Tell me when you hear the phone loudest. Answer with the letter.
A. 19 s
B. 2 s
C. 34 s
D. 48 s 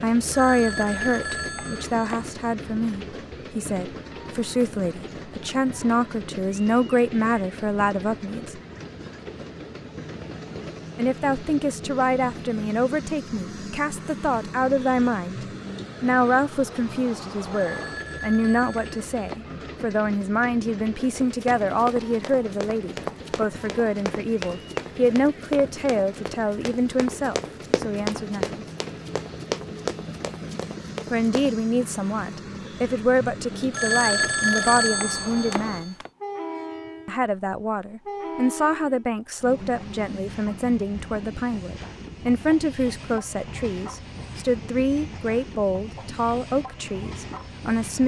C.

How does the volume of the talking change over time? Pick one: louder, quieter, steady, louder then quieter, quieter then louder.
steady.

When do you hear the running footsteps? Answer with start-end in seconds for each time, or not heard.
21.1-31.6.